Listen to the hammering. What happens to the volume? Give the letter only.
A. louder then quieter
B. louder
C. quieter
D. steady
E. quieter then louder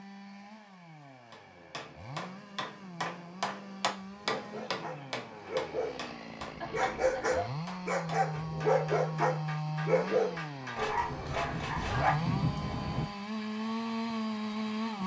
A.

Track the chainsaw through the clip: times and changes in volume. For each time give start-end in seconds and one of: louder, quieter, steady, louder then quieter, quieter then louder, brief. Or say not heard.
0.0-15.0 louder.